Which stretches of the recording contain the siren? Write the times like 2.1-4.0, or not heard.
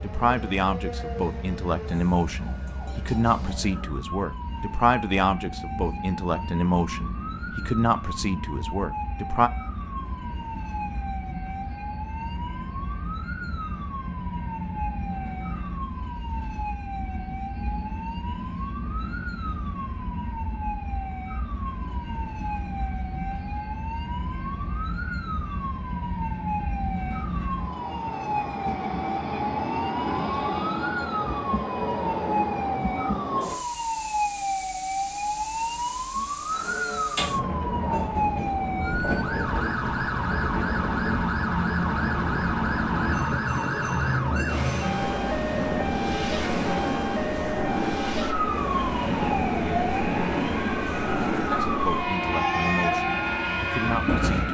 0.0-54.5.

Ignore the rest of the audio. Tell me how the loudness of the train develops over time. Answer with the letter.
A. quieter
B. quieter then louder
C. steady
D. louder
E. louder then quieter
D.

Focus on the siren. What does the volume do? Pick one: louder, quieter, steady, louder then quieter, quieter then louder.
louder.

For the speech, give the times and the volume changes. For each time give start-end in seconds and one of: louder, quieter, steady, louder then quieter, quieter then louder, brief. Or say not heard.
0.0-9.5 steady
51.6-54.5 brief.